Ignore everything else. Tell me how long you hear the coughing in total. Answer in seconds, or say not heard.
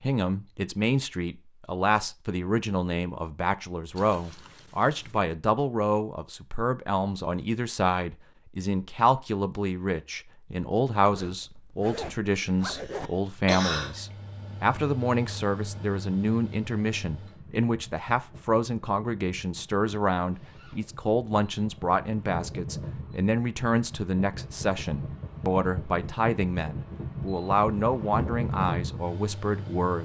2 s.